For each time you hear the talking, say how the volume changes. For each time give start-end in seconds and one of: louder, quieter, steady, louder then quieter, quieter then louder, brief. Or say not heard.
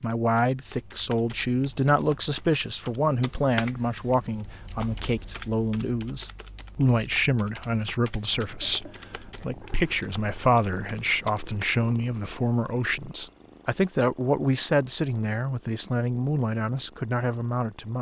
0.0-17.9 steady.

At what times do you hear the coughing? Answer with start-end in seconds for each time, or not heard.
not heard.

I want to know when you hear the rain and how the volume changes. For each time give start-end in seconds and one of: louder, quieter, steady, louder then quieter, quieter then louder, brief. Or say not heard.
not heard.